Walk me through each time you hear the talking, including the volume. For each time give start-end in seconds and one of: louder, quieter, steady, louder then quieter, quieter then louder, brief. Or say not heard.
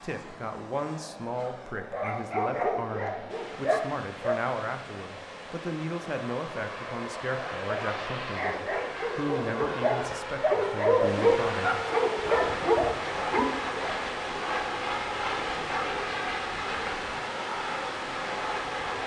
0.0-11.8 steady.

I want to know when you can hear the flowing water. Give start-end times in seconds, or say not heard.
3.2-19.0.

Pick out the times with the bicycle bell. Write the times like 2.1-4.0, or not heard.
not heard.